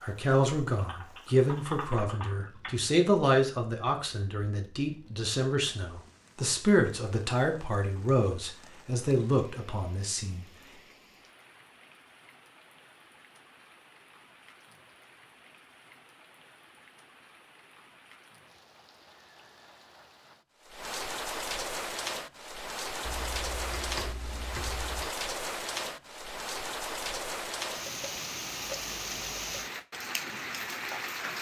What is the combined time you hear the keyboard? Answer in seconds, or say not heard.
4 s.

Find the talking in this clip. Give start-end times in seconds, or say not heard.
0.0-10.4.